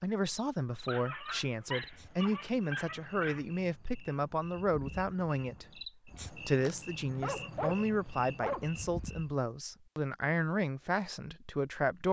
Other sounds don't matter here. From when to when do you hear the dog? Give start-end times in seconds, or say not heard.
0.8-3.5, 7.2-9.2.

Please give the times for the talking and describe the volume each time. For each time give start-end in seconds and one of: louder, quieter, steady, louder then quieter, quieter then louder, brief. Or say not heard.
0.0-12.0 steady.